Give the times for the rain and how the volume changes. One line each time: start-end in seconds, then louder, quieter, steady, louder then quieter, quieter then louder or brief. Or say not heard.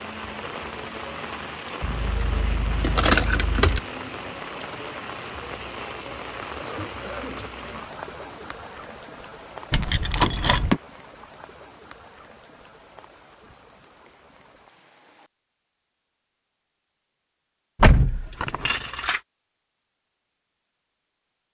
0.0-15.3 quieter.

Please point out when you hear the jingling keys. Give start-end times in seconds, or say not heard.
1.8-3.8, 9.7-10.8, 17.8-19.2.